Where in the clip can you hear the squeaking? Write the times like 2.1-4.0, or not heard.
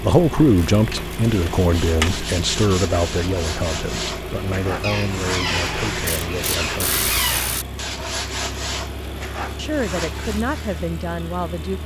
4.8-7.6.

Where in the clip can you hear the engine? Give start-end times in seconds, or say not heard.
0.0-11.8.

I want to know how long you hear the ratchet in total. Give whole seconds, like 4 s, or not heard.
3 s.